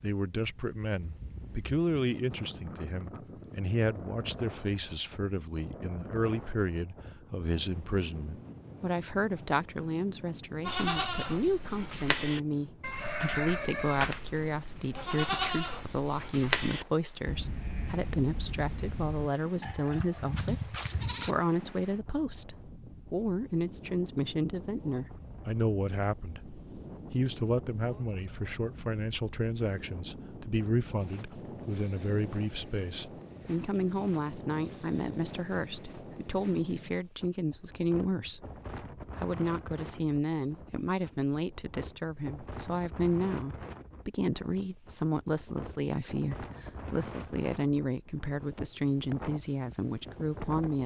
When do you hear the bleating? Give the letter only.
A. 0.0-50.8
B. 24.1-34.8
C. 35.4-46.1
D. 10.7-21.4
D.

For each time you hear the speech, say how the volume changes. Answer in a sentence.
The speech can be heard from 0.0 to 50.8 s, at a steady volume.